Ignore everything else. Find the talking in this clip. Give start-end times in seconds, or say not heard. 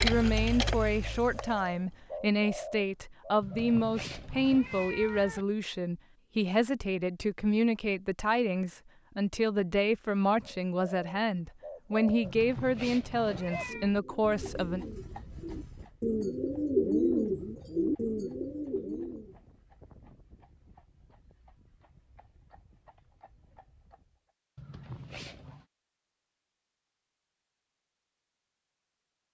0.0-14.8.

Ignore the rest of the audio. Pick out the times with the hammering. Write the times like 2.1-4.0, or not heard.
not heard.